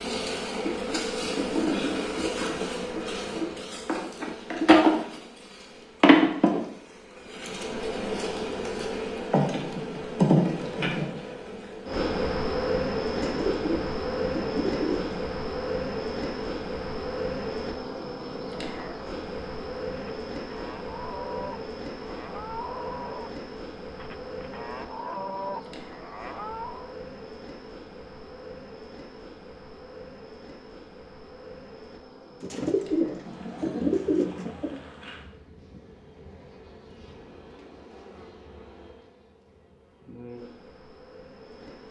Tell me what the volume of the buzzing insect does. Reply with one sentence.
The volume of the buzzing insect goes down.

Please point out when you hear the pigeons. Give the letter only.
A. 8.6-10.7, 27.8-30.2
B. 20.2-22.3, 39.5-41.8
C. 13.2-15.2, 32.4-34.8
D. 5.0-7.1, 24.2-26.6
C.